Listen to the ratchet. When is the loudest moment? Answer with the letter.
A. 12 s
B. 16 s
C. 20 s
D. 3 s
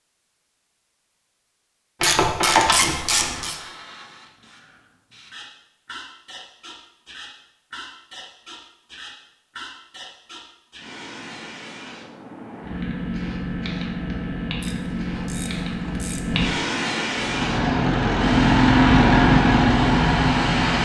D.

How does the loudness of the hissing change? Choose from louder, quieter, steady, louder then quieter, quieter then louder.
louder.